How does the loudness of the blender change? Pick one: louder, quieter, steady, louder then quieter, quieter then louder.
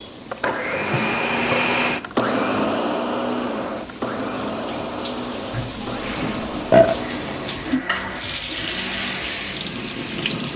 quieter.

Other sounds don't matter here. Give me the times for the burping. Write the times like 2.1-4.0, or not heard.
0.5-1.6, 5.5-7.0.